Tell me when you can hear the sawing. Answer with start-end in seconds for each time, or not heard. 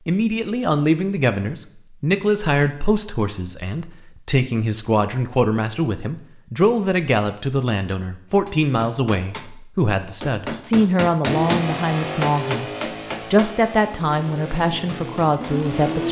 not heard.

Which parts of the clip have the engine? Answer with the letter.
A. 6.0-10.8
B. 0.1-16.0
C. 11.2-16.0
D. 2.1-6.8
C.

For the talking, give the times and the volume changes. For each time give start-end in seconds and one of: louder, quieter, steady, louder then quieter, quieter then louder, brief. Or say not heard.
0.1-16.0 steady.